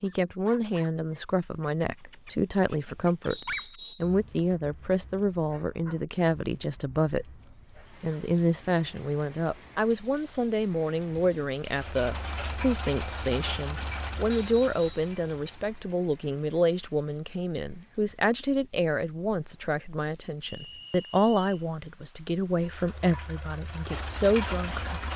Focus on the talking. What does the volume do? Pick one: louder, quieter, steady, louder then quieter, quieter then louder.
steady.